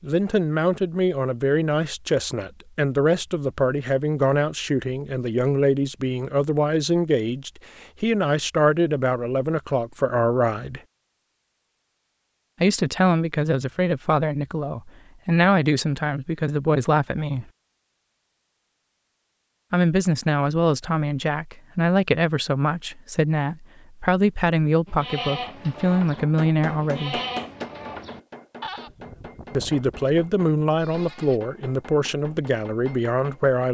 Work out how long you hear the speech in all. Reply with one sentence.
You can hear the speech for 27 seconds altogether.